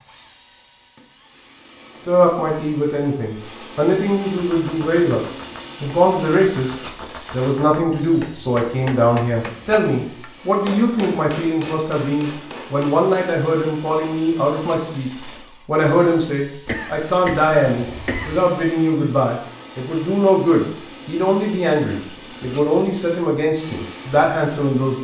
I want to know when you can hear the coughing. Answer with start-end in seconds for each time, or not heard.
16.6-18.4.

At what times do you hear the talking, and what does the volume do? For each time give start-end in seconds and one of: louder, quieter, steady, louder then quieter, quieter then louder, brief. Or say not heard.
2.0-25.0 steady.